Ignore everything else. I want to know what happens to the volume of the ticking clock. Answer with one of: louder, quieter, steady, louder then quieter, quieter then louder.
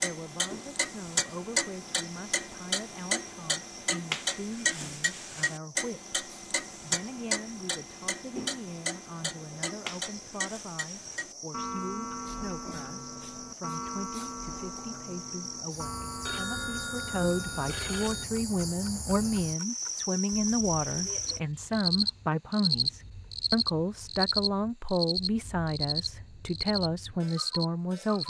quieter.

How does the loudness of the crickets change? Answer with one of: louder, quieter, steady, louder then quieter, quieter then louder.
louder.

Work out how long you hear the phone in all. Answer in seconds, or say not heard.
2 s.